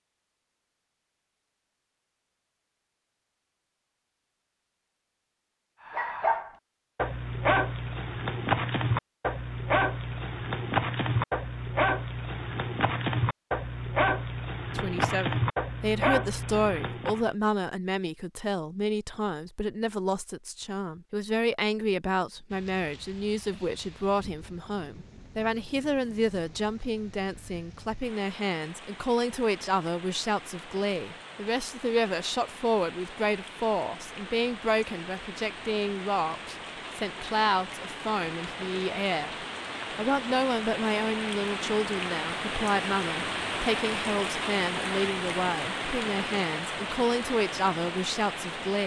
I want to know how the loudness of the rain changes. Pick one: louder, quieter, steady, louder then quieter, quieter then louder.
louder.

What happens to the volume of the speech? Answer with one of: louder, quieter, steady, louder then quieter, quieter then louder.
steady.